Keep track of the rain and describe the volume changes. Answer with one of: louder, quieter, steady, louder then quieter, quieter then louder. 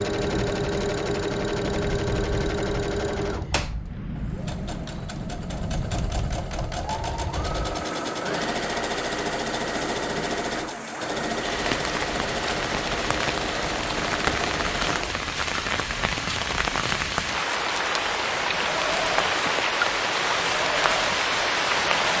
louder.